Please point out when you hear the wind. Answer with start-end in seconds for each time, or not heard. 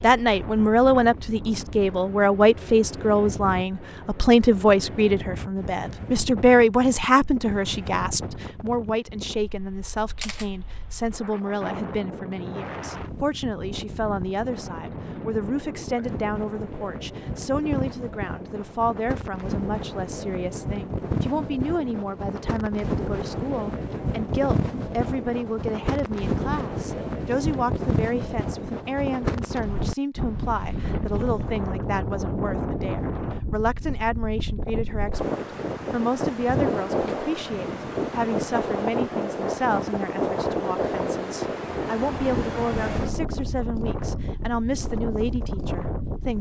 0.0-46.3.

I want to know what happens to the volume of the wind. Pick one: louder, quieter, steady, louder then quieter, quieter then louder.
louder.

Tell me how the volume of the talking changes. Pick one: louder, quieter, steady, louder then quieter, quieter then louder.
quieter.